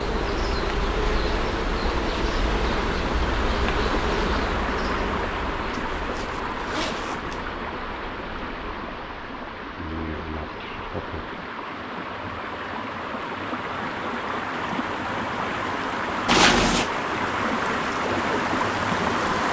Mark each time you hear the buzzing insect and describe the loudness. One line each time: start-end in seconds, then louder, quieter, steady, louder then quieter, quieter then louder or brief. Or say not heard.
0.0-11.4 quieter.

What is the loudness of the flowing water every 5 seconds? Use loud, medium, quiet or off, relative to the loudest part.
medium, medium, medium, loud.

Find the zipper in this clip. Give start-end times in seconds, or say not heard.
5.7-7.5, 16.2-16.9.